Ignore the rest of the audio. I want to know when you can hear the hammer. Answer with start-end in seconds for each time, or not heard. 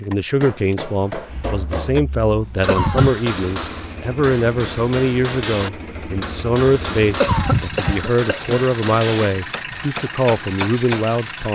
0.4-11.1.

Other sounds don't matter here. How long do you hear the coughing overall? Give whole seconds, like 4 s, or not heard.
2 s.